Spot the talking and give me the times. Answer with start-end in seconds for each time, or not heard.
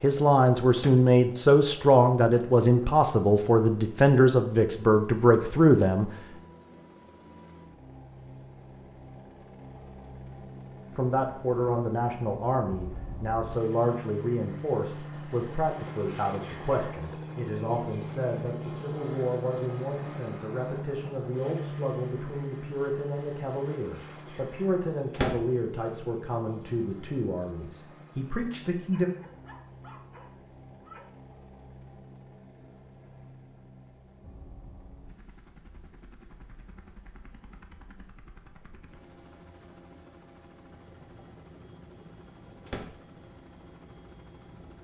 0.0-6.1, 10.9-29.1.